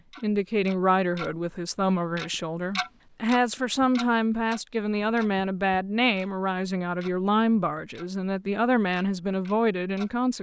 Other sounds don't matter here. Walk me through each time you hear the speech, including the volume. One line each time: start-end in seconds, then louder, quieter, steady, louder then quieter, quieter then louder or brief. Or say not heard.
0.1-10.3 steady.